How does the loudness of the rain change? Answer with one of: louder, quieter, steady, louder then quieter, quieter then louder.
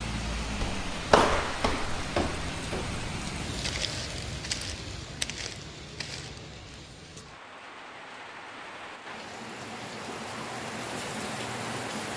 quieter then louder.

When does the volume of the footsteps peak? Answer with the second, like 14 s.
1 s.